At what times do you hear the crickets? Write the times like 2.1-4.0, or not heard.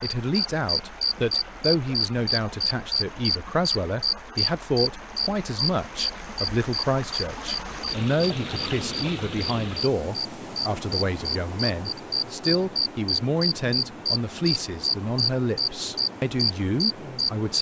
0.0-17.5.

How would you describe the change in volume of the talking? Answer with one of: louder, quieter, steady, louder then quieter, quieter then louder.
steady.